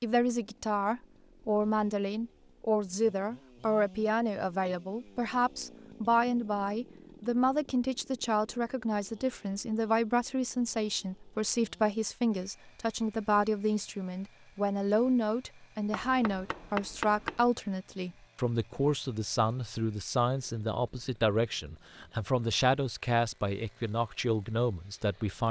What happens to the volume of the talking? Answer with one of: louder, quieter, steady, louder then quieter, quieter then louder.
steady.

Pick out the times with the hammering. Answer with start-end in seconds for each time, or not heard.
15.9-17.4.